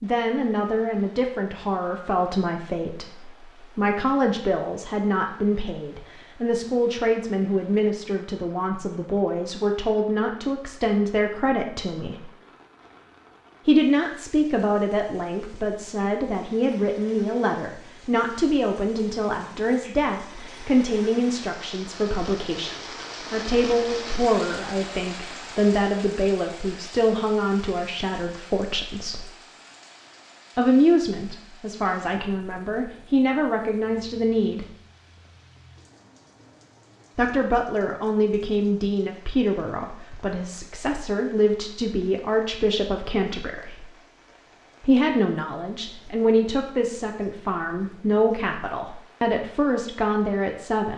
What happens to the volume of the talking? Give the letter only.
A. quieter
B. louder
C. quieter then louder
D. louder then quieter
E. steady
E.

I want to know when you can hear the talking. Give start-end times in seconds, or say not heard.
0.0-12.3, 13.7-29.2, 30.6-34.6, 37.1-43.9, 44.8-50.9.